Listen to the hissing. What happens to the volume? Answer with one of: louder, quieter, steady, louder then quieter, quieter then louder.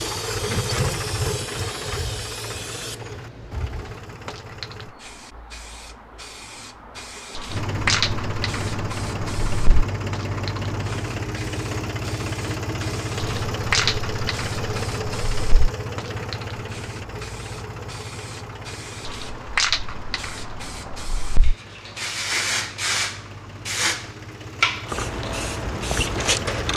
louder.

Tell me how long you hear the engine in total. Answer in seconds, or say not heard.
24 s.